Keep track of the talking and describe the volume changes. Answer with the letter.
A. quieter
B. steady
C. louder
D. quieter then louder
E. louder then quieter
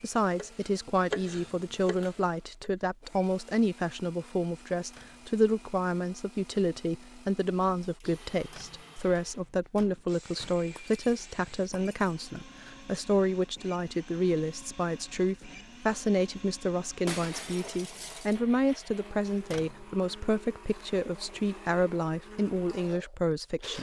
B.